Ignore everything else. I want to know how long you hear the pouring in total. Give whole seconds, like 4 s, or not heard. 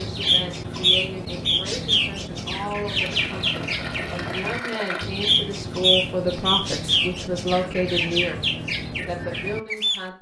2 s.